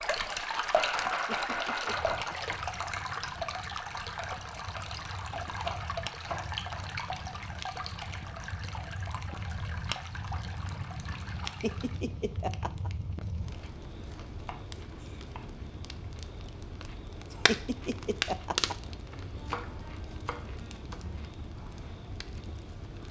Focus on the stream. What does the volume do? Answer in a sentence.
The volume of the stream goes down.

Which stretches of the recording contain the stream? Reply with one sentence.
You can hear the stream from 0.0 to 12.1 s.